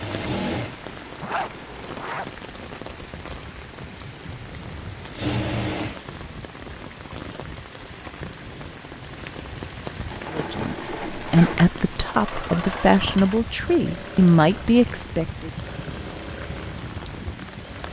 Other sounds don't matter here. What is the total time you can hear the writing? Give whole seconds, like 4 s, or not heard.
not heard.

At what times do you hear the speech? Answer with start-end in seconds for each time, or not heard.
10.3-15.5.